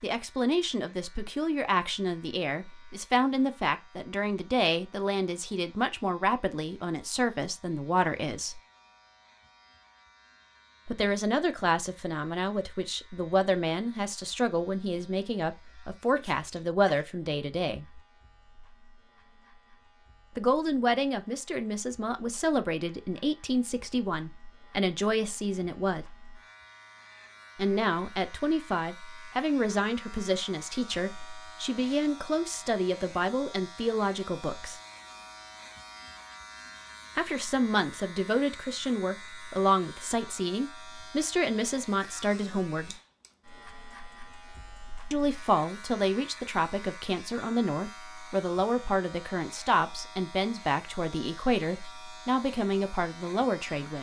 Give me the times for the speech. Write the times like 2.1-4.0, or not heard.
0.0-8.6, 10.8-18.0, 20.4-26.1, 27.6-34.8, 37.1-43.0, 45.1-53.9.